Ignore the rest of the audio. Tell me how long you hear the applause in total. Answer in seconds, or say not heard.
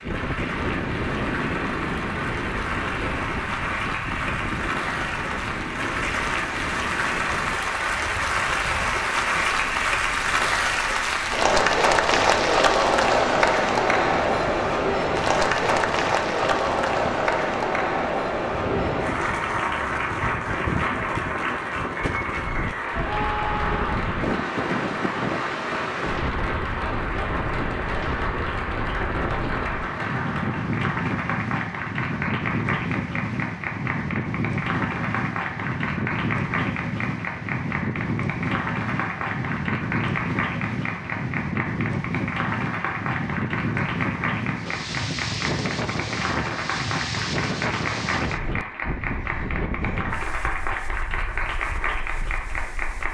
53 s.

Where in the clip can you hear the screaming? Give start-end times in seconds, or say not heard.
23.0-24.1.